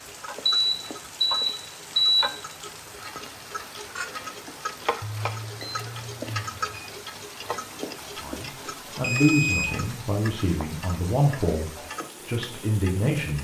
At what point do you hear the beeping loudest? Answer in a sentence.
The volume of the beeping peaks at 2 seconds.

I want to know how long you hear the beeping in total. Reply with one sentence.
The beeping can be heard for 5 seconds in total.